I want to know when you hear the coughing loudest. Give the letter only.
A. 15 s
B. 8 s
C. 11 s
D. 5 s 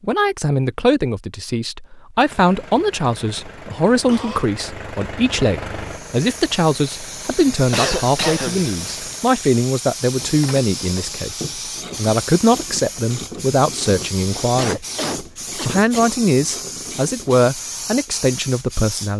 B.